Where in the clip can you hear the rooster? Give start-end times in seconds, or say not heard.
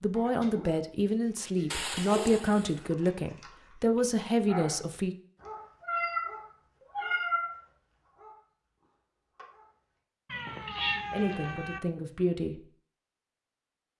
not heard.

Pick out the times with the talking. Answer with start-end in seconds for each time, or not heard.
0.0-5.2, 11.1-12.7.